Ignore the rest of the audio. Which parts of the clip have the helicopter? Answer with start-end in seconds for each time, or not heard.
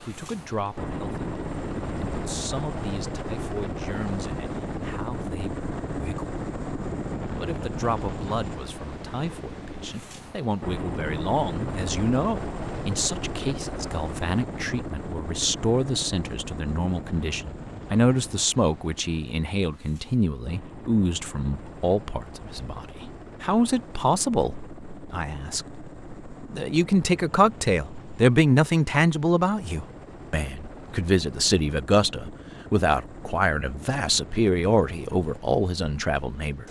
0.0-36.6.